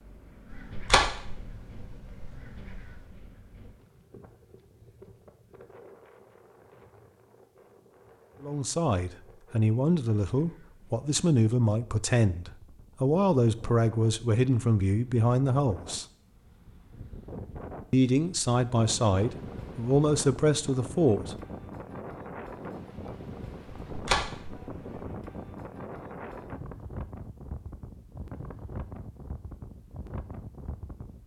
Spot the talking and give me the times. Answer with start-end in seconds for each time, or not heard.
8.4-16.1, 17.9-21.4.